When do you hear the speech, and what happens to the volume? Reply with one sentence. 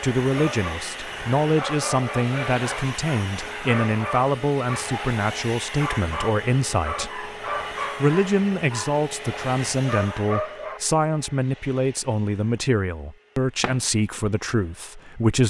You can hear the speech from 0.0 to 15.4 s, at a steady volume.